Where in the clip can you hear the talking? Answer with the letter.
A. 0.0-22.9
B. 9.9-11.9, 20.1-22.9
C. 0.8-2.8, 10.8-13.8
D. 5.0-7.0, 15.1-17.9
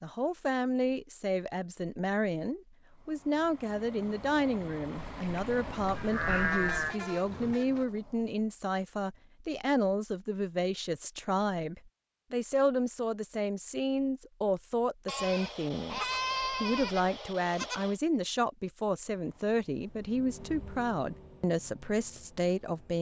A.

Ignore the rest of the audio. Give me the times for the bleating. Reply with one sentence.
The bleating can be heard from 5.0 to 7.0 s and from 15.1 to 17.9 s.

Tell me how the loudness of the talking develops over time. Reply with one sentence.
The volume of the talking stays about the same.